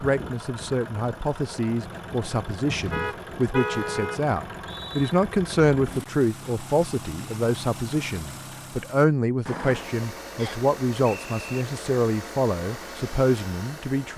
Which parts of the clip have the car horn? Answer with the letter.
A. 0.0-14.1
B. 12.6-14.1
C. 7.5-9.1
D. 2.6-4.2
D.